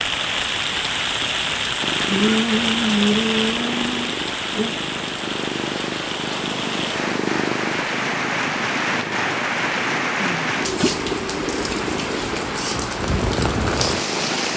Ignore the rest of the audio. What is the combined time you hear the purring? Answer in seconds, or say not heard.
13 s.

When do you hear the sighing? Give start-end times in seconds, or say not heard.
2.0-4.8.